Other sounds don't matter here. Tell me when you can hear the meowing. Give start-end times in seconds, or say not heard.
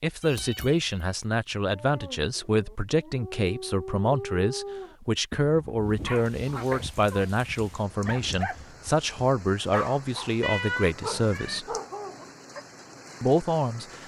0.2-0.9, 6.7-7.3, 10.4-11.6.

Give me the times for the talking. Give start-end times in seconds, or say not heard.
0.0-11.8, 13.2-14.0.